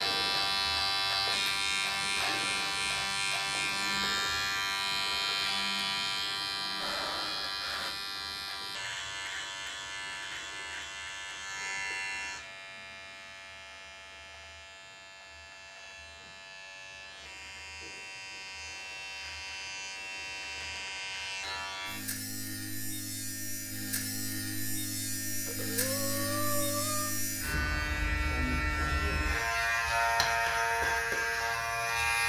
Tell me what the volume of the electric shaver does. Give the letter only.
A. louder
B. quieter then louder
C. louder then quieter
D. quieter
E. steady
B.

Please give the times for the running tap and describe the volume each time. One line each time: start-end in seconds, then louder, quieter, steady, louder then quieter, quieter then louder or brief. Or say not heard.
not heard.